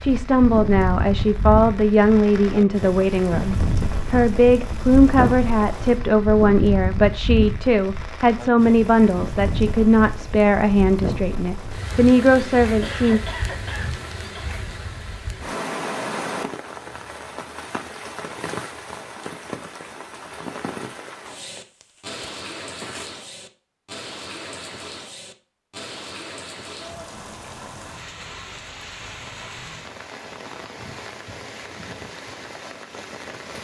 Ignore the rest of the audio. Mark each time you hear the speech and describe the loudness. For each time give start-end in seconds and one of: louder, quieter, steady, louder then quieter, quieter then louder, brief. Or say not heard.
0.0-13.2 steady.